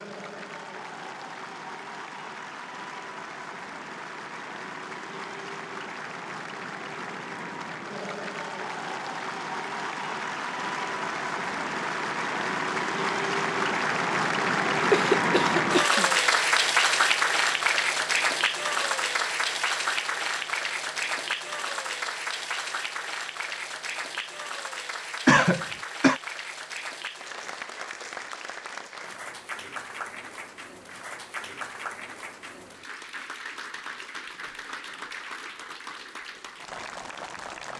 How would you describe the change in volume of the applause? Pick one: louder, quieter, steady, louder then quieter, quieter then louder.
louder then quieter.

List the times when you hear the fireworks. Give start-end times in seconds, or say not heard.
not heard.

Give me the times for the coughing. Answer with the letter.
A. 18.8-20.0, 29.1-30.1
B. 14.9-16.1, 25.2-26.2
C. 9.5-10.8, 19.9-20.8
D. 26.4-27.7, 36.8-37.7
B.